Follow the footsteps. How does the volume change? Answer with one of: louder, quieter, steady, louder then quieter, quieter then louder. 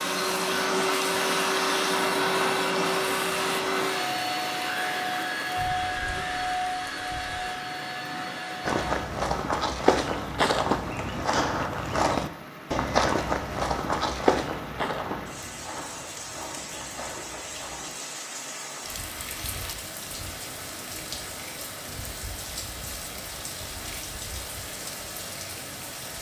quieter.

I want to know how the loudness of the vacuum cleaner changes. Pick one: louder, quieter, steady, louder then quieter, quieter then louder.
quieter.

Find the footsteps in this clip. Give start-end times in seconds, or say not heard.
8.7-17.9.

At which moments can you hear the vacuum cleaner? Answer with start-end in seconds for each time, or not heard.
0.0-9.1.